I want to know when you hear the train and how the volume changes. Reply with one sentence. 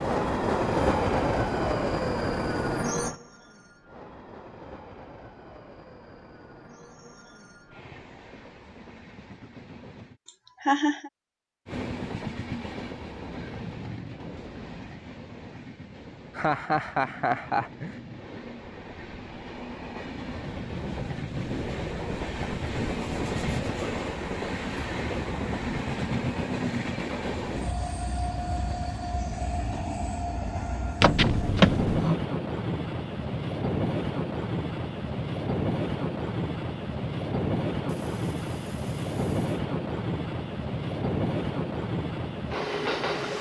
The train can be heard from 0.0 to 10.2 s, getting quieter; and from 11.7 to 43.3 s, getting louder.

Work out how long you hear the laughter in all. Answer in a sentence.
You can hear the laughter for 4 seconds altogether.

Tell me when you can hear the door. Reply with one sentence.
You can hear the door from 31.0 to 32.1 s.